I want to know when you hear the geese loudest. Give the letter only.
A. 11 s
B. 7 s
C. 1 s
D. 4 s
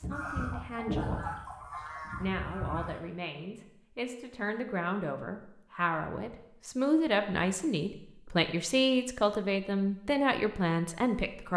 C.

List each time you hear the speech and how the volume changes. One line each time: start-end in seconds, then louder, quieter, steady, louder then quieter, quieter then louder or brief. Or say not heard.
0.0-1.3 brief
2.1-11.5 louder.